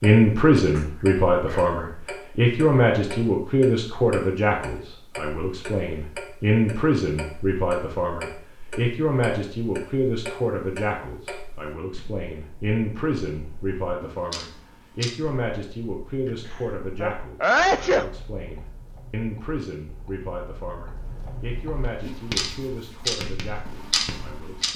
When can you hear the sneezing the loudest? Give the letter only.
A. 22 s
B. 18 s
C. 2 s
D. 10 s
B.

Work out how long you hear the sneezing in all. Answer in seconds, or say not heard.
3 s.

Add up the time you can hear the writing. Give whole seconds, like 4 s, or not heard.
3 s.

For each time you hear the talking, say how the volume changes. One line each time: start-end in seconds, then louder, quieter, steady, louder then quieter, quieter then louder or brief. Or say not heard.
0.0-24.7 quieter.